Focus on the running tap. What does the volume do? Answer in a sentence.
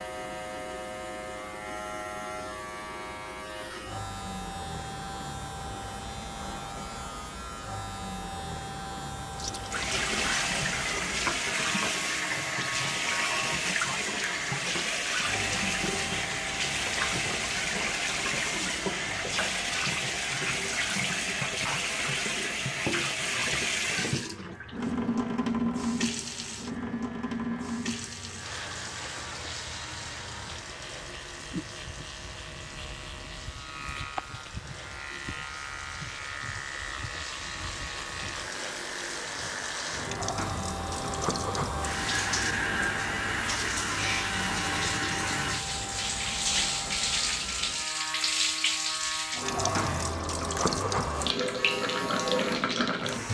The volume of the running tap goes down, then up.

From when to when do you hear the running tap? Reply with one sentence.
The running tap can be heard from 9.3 to 53.2 s.